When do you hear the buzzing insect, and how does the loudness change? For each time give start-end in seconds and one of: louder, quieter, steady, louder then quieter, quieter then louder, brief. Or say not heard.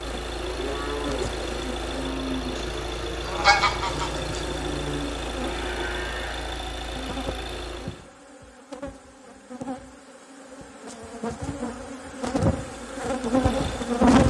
0.0-2.1 brief
3.9-14.2 louder.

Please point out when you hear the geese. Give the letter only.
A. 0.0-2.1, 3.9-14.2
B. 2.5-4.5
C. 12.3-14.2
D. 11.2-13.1
B.